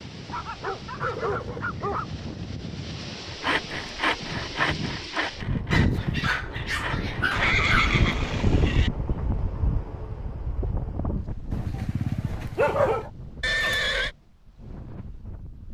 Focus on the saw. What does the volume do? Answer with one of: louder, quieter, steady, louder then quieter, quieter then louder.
quieter.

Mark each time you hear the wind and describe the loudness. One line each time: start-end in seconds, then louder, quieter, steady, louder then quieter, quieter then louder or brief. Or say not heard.
0.0-15.6 louder then quieter.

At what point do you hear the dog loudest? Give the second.
13 s.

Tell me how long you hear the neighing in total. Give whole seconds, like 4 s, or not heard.
3 s.